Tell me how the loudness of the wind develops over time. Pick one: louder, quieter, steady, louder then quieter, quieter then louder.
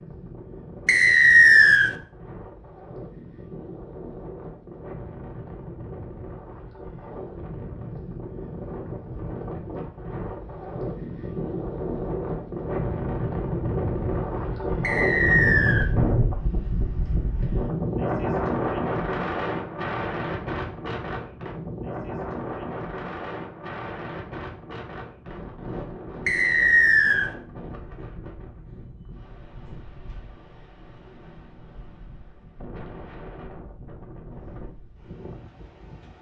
louder then quieter.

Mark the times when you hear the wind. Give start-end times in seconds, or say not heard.
0.0-36.1.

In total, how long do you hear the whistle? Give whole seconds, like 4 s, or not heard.
3 s.